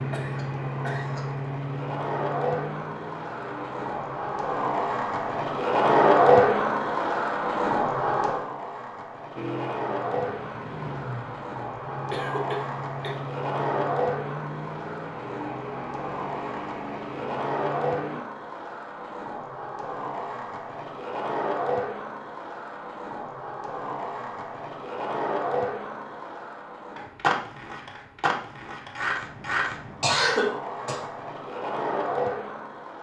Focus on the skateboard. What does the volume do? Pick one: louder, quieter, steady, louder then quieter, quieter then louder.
quieter.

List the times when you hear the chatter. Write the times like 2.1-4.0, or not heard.
not heard.